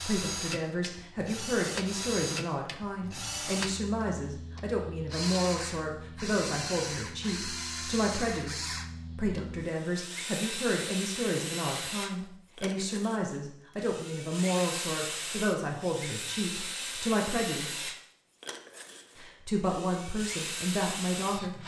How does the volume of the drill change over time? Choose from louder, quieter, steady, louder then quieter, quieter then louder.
steady.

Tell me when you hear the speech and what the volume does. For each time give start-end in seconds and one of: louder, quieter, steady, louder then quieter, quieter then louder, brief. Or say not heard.
0.0-17.9 steady
19.1-21.6 brief.